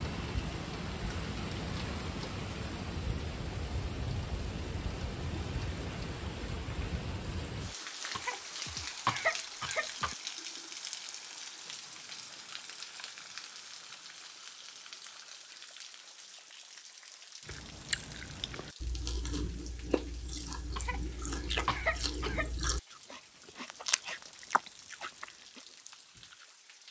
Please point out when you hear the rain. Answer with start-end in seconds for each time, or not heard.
0.0-26.8.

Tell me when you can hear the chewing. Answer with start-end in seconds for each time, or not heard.
17.4-26.4.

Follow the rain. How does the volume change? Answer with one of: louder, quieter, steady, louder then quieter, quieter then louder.
quieter.